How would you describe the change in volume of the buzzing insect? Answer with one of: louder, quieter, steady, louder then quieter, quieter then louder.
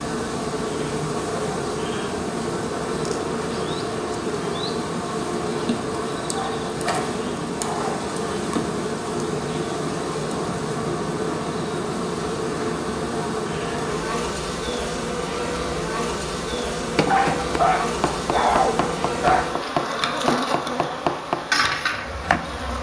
steady.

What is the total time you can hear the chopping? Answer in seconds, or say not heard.
6 s.